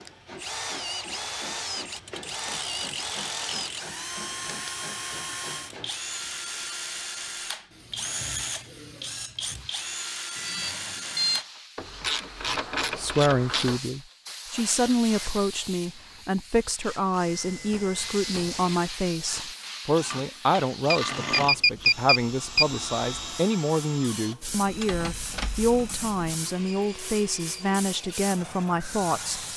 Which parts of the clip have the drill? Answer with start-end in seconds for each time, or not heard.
0.0-11.4, 14.5-29.5.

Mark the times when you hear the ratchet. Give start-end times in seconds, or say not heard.
1.9-3.8, 11.8-13.8, 24.4-26.4.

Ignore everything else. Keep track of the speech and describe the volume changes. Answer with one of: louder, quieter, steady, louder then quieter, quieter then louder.
steady.